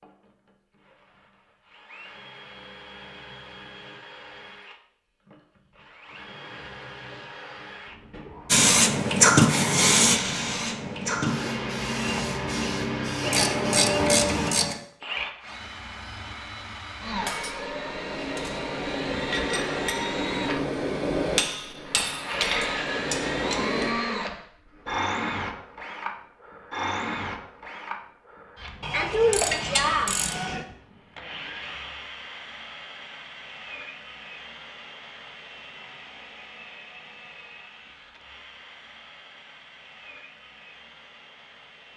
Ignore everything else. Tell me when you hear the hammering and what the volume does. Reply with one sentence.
You can hear the hammering from 17.2 to 23.9 s, getting louder.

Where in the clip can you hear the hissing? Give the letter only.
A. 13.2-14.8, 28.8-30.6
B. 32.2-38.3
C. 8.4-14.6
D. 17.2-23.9
C.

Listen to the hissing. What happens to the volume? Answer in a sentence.
The loudness of the hissing goes down.